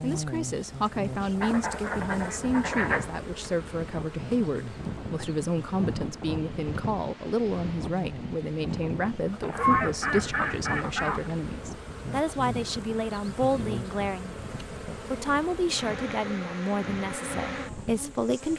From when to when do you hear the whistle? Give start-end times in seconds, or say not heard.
not heard.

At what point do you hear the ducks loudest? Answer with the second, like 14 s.
10 s.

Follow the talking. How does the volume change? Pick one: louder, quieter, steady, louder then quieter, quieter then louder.
steady.